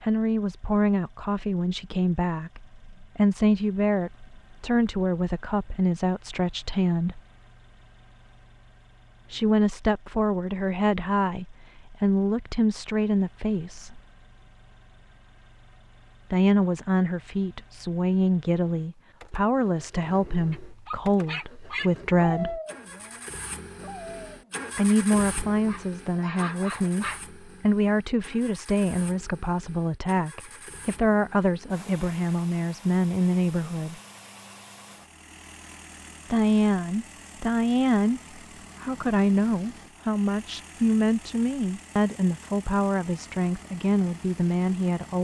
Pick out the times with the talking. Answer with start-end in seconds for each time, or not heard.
0.0-7.2, 9.3-14.0, 16.3-22.6, 24.8-34.0, 36.3-38.2, 38.8-45.1.